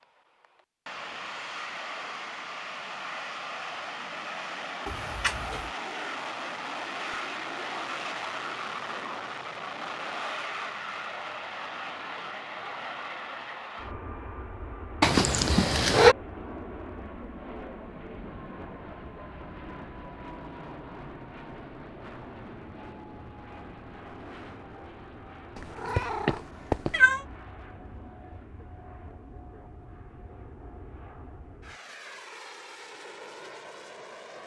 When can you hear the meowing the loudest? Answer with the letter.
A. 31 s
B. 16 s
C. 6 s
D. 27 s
B.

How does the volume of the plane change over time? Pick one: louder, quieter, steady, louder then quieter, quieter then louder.
quieter.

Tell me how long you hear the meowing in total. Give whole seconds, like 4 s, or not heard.
4 s.